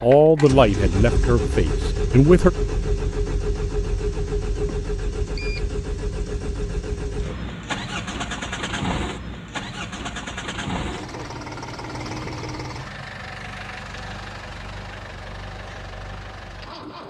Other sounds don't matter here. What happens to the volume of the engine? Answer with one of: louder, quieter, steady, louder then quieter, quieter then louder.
quieter.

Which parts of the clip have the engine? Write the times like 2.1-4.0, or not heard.
0.0-17.0.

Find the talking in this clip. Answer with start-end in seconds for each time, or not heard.
0.0-2.5.